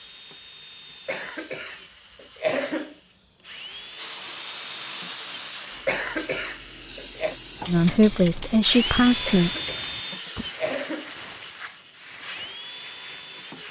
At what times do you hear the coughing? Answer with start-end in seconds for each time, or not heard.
1.1-3.0, 5.8-7.3, 9.2-11.2.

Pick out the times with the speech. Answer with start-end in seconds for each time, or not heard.
7.7-9.5.